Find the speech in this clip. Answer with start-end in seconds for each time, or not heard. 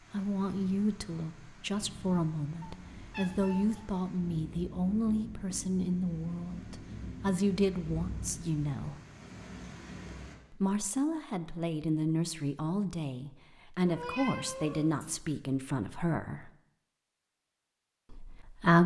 0.1-8.9, 10.5-16.5, 18.1-18.8.